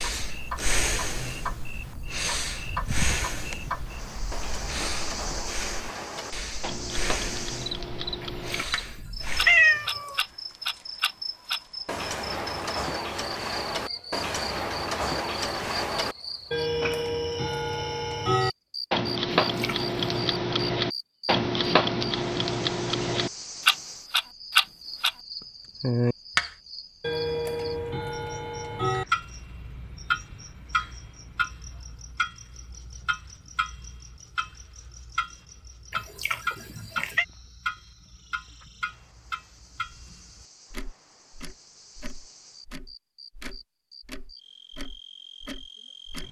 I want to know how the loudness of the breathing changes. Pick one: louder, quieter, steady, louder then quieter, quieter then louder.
quieter.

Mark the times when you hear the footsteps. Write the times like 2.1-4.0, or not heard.
not heard.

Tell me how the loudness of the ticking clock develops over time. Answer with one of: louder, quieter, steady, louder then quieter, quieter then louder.
louder then quieter.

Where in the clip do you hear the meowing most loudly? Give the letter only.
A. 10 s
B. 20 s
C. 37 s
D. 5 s
A.